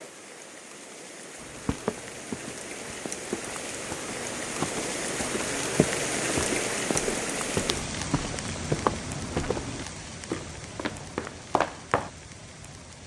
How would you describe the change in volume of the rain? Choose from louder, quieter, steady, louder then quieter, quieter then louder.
louder then quieter.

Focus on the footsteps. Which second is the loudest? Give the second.
9 s.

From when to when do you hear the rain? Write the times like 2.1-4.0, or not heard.
0.0-13.0.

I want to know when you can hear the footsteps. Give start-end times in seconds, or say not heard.
1.4-12.1.